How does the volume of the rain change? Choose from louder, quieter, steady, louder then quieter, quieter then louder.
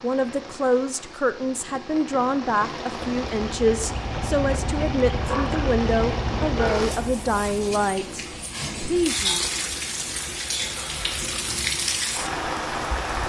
louder.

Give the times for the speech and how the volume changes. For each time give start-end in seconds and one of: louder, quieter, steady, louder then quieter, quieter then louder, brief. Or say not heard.
0.0-9.4 steady.